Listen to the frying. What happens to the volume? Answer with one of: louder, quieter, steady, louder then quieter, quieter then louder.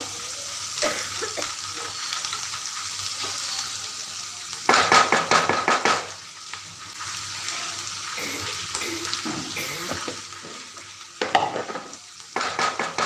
louder then quieter.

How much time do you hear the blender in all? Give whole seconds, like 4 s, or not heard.
not heard.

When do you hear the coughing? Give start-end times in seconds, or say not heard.
0.8-1.5, 8.2-10.1.